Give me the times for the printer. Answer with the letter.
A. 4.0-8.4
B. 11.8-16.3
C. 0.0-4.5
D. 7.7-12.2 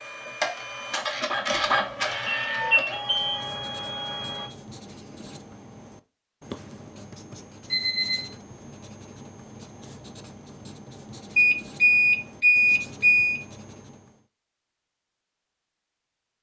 C.